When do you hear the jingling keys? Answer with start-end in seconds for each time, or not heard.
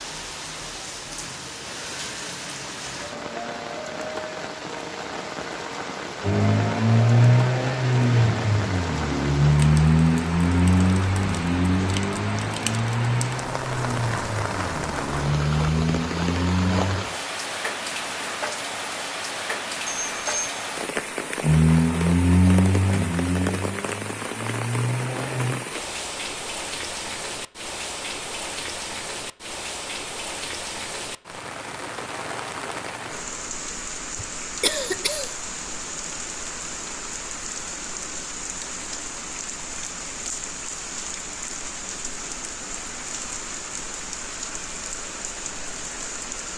not heard.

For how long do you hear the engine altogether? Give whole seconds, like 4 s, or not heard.
15 s.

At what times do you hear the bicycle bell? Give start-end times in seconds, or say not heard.
19.9-20.6.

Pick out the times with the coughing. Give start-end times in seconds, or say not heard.
34.1-35.3.